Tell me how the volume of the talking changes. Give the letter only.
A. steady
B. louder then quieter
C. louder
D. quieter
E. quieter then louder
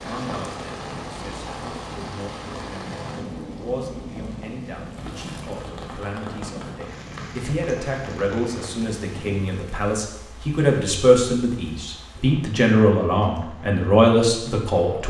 C.